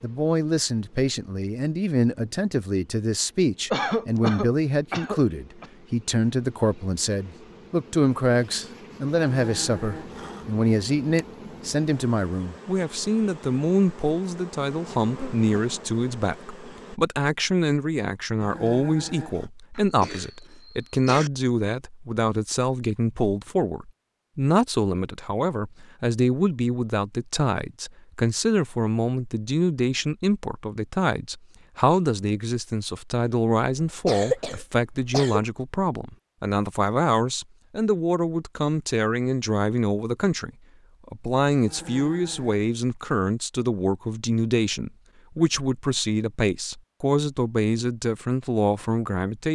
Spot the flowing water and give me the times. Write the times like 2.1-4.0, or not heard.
not heard.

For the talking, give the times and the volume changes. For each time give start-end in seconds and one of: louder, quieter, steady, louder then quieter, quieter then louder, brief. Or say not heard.
0.0-49.4 steady.